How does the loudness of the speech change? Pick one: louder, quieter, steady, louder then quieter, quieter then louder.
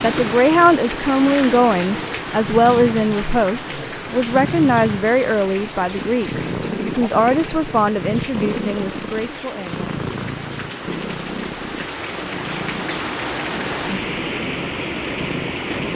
quieter.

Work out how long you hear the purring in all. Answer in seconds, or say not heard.
16 s.